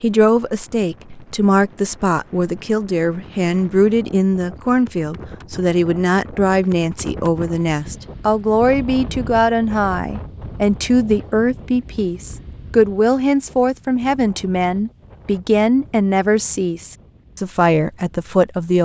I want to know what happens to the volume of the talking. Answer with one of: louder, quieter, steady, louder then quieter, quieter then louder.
steady.